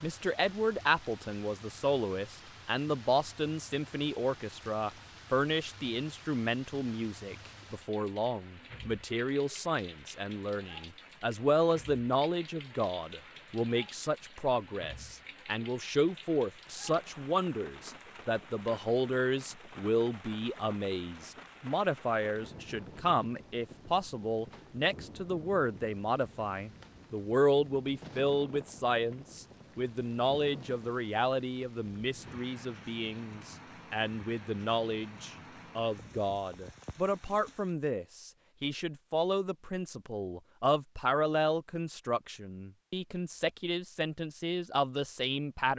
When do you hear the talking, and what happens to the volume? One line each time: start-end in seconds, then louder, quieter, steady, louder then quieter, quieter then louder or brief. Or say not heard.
0.0-45.7 steady.